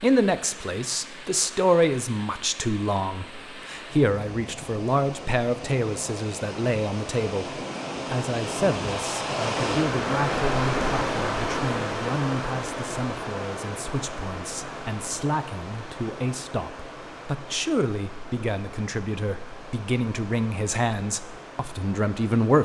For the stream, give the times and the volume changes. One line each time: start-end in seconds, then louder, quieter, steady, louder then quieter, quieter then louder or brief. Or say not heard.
0.0-22.6 louder then quieter.